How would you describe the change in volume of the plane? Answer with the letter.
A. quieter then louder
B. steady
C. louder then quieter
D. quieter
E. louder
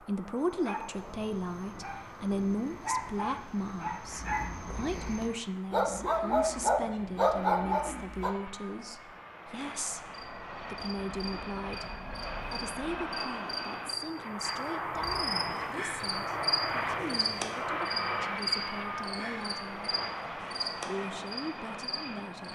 E.